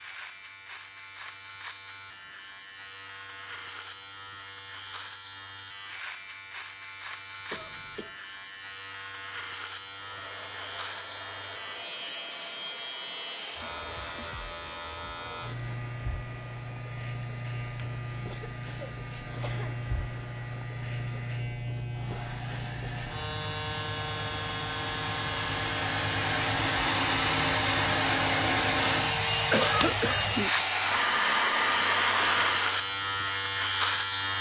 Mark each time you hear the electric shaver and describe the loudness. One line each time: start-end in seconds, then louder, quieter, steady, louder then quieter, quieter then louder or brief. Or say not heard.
0.0-34.3 louder.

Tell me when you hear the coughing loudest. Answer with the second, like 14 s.
30 s.